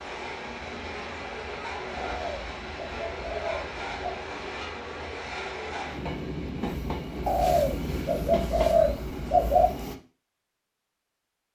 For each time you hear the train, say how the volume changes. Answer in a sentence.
The train can be heard from 0.0 to 9.9 s, at a steady volume.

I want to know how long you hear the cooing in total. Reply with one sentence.
The cooing can be heard for 5 seconds in total.